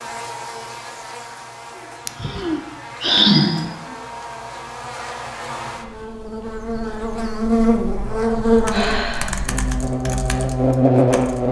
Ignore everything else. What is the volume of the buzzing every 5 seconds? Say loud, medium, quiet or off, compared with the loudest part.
quiet, medium, loud.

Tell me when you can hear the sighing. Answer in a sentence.
The sighing can be heard from 2.0 to 3.7 s and from 8.7 to 9.5 s.